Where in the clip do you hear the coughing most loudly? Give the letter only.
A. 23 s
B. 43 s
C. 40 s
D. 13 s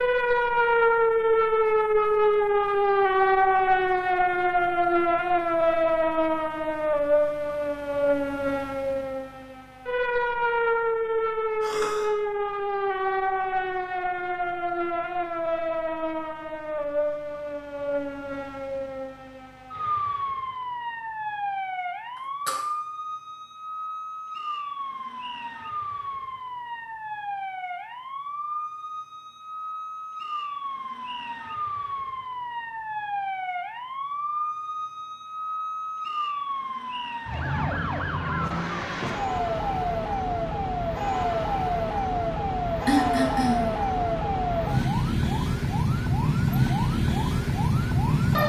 B.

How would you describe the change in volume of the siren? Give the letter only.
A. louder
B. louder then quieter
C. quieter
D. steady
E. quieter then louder
E.